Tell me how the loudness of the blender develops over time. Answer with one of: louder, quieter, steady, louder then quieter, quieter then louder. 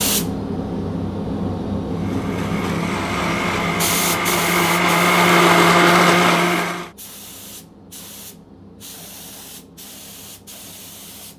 louder.